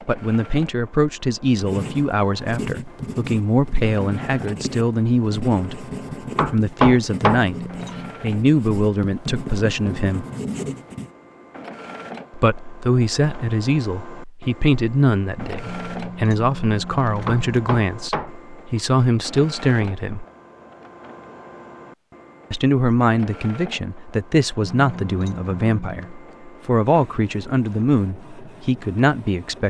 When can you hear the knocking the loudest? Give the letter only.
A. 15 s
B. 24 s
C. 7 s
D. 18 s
C.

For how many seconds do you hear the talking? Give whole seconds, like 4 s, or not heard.
25 s.